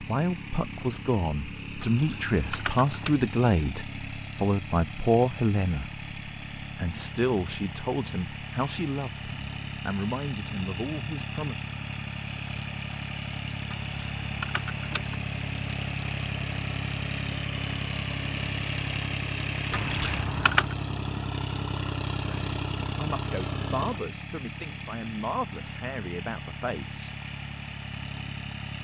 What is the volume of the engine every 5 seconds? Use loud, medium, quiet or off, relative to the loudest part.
medium, medium, loud, loud, loud, medium.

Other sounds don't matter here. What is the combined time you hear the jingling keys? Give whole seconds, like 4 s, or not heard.
4 s.